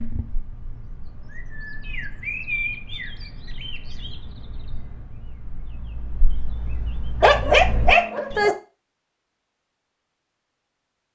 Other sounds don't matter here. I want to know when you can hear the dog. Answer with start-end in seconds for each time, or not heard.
7.2-8.6.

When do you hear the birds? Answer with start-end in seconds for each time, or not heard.
0.0-8.4.